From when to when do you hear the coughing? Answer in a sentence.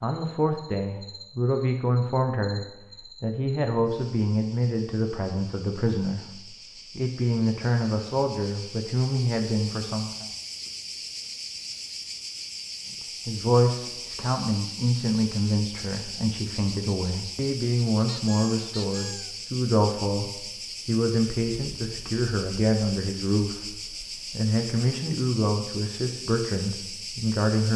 The coughing can't be heard in this clip.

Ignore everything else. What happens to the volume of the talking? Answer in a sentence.
The loudness of the talking stays about the same.